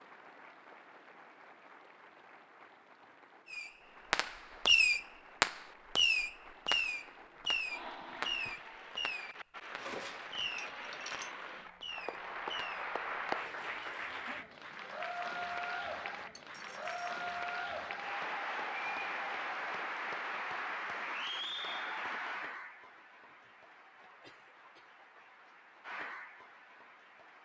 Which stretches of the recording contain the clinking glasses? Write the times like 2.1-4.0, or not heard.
9.8-11.3, 16.4-17.1.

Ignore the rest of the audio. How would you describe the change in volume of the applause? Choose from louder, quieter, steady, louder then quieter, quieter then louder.
louder then quieter.